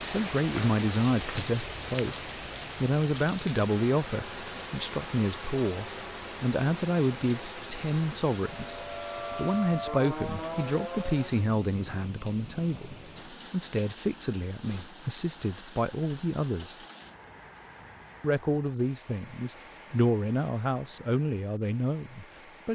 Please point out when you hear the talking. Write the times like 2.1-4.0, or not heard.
0.1-16.8, 18.2-22.7.